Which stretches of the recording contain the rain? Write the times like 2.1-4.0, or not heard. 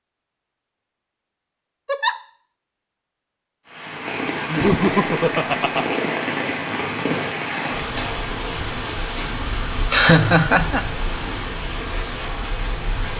3.6-13.1.